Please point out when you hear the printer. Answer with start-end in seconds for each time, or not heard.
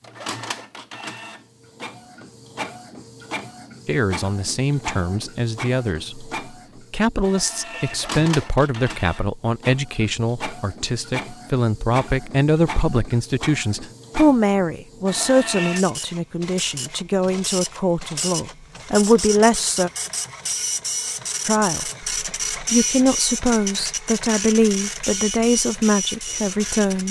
0.0-27.0.